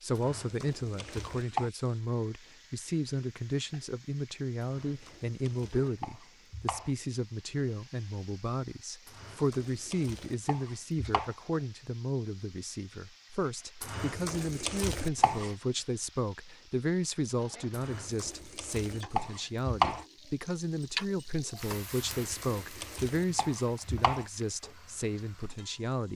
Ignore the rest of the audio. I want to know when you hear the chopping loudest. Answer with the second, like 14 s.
20 s.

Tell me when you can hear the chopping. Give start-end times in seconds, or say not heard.
0.1-1.7, 4.6-6.9, 9.1-11.3, 13.8-15.6, 17.7-20.1, 21.9-24.2.